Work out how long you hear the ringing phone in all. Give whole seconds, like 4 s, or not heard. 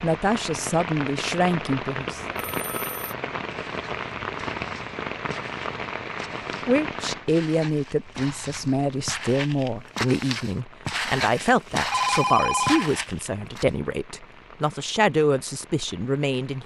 2 s.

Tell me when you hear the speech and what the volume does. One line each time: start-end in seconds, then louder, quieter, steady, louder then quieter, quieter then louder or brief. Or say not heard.
0.0-2.4 brief
6.7-16.6 steady.